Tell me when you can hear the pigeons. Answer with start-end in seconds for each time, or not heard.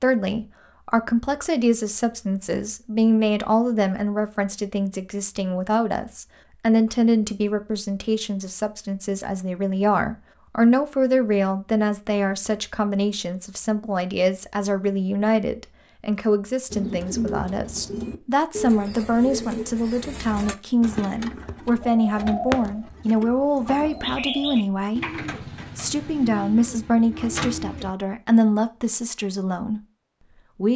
16.7-27.9.